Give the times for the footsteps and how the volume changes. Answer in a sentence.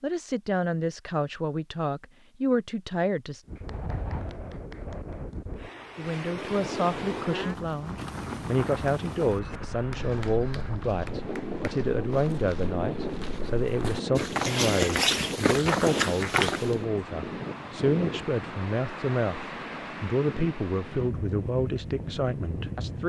The footsteps can be heard from 9.4 to 16.8 s, getting louder.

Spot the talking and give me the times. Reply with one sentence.
You can hear the talking from 0.0 to 3.4 s and from 6.0 to 23.0 s.